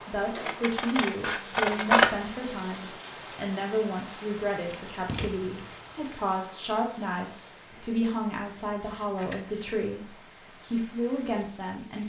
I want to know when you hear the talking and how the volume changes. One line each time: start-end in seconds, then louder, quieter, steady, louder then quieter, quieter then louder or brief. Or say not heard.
0.1-12.0 steady.